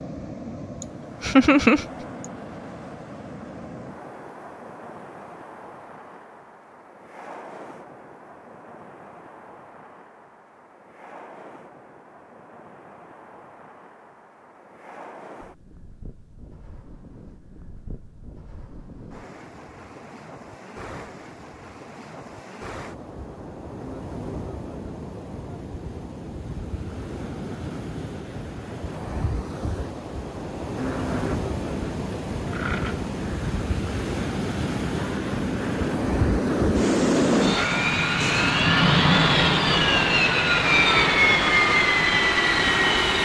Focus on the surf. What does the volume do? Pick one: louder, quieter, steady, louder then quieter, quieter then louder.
quieter then louder.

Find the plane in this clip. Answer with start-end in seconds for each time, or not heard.
30.8-43.1.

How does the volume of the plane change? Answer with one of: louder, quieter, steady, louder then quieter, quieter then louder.
louder.